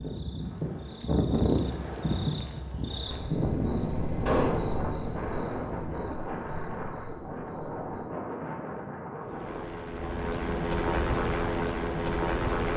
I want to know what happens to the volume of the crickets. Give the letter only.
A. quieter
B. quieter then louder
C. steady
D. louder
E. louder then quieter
E.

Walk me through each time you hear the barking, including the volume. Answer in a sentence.
You can't hear the barking here.